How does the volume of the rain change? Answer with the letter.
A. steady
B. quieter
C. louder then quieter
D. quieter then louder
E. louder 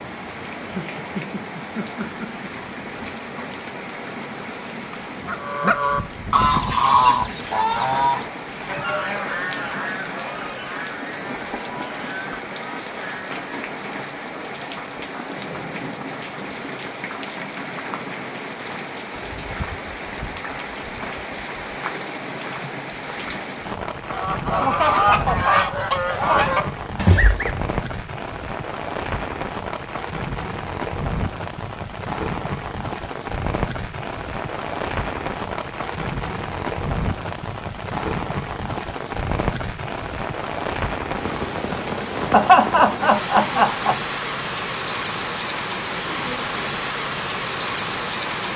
E.